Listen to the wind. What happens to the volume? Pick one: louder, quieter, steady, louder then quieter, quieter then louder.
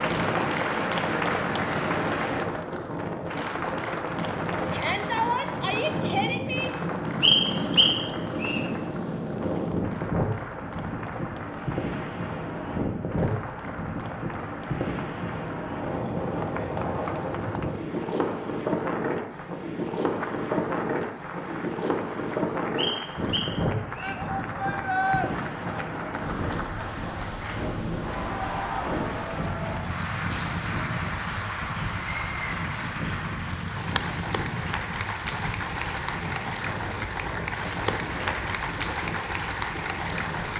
quieter.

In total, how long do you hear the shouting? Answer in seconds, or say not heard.
3 s.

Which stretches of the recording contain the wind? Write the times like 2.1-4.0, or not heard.
0.0-40.5.